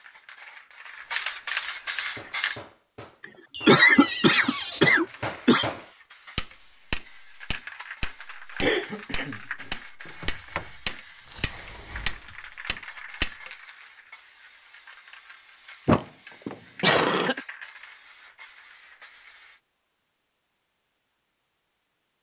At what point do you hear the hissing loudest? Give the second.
2 s.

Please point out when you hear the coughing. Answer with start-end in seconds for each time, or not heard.
3.2-5.7, 8.6-9.7, 16.8-17.4.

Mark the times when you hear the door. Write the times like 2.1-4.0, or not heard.
3.5-4.9, 10.1-10.7, 11.3-12.2, 15.8-16.6.